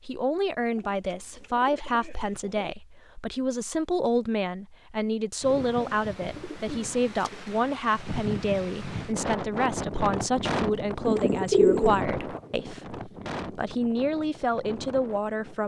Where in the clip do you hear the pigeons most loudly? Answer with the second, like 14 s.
12 s.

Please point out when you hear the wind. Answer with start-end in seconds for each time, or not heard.
5.4-15.6.